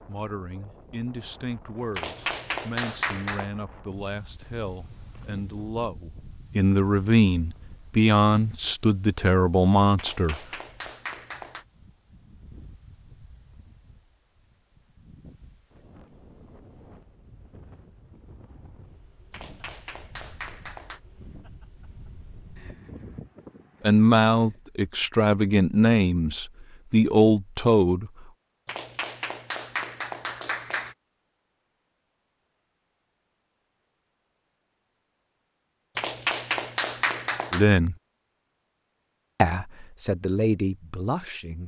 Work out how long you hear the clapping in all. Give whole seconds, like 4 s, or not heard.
9 s.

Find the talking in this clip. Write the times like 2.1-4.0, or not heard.
0.1-10.4, 23.8-28.2, 37.5-38.0, 39.4-41.6.